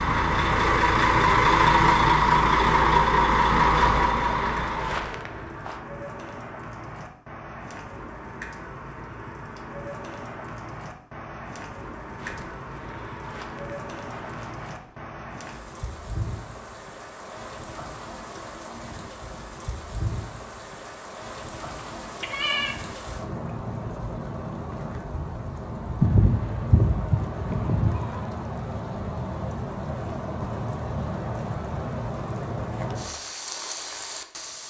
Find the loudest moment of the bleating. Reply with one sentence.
The loudest moment of the bleating is at 26 seconds.